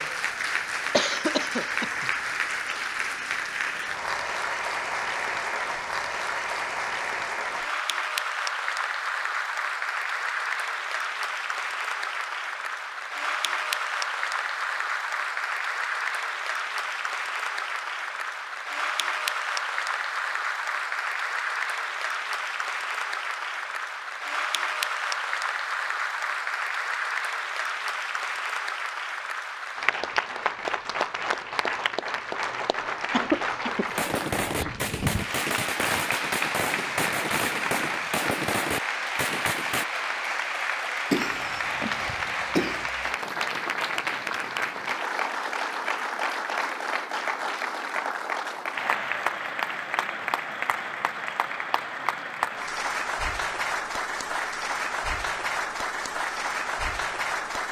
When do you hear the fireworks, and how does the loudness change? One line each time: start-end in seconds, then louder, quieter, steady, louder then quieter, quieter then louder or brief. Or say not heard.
33.9-39.9 steady.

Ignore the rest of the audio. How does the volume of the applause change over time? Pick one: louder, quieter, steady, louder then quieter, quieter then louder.
steady.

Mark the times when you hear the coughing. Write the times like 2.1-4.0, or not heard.
0.9-2.1, 33.1-33.9, 41.1-42.9.